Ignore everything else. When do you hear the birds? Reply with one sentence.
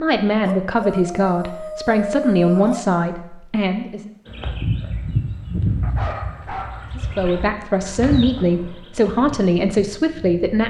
You can hear the birds from 4.2 to 10.6 s.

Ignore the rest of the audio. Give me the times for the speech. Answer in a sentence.
The speech can be heard from 0.0 to 4.1 s and from 7.0 to 10.6 s.